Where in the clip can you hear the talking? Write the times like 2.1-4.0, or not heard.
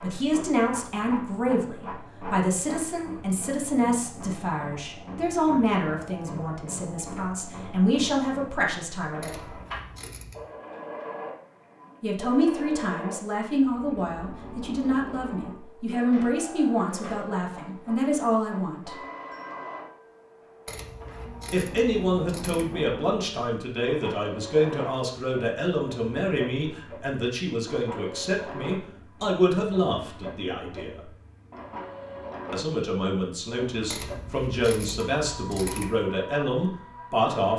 0.0-9.5, 12.0-18.9, 21.5-31.0, 32.5-37.5.